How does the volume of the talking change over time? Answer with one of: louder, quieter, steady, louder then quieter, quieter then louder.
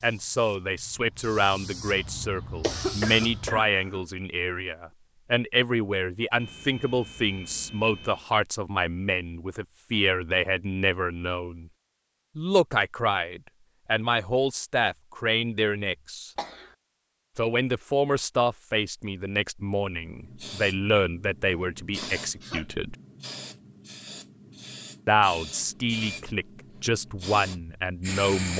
steady.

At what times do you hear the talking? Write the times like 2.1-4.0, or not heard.
0.0-11.7, 12.3-16.3, 17.4-22.9, 25.1-28.5.